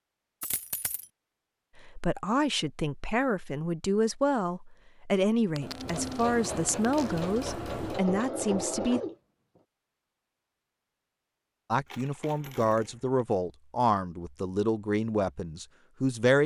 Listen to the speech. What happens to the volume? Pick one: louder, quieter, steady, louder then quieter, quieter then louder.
steady.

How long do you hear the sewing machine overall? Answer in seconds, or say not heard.
4 s.